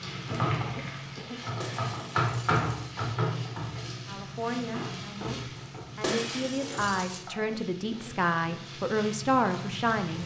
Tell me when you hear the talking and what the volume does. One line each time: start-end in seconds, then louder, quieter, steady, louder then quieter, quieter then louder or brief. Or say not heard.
4.0-10.2 louder.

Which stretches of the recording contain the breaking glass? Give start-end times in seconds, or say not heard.
1.6-2.9, 6.0-7.2.